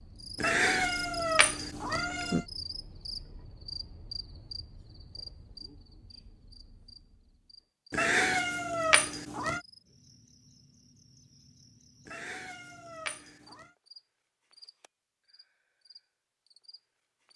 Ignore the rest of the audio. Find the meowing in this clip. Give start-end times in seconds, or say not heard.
0.3-2.5, 7.9-9.6, 12.1-13.7.